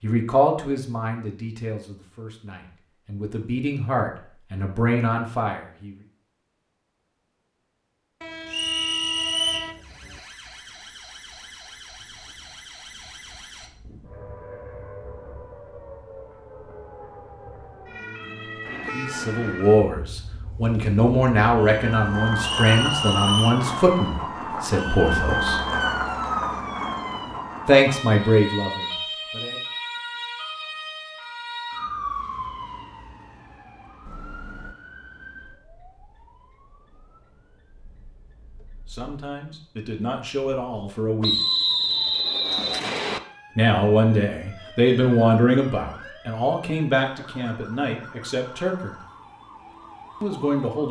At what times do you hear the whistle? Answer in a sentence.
You can hear the whistle from 8.5 to 9.7 s, from 22.4 to 23.6 s and from 41.2 to 43.2 s.